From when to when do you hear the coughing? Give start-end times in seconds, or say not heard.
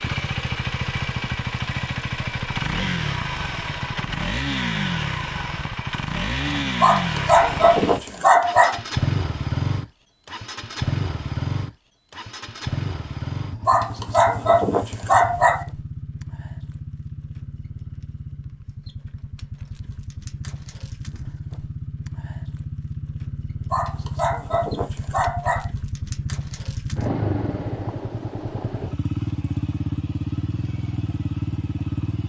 not heard.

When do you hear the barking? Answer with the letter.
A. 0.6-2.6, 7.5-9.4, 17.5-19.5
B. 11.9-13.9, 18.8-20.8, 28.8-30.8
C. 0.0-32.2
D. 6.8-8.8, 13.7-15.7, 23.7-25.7
D.